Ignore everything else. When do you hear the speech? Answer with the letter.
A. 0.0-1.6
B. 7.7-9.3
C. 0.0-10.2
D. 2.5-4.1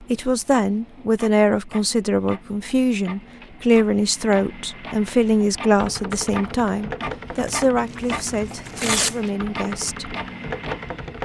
C.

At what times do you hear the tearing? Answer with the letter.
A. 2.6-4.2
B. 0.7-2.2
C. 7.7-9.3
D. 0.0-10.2
C.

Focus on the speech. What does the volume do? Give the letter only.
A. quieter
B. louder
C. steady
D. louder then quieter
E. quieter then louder
A.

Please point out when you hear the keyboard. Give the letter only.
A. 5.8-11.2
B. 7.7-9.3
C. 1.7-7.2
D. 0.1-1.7
A.